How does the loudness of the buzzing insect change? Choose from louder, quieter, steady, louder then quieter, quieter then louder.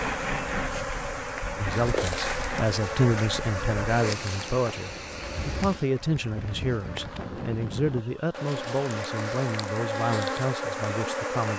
quieter then louder.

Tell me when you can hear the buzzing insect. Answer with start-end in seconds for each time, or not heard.
0.0-11.5.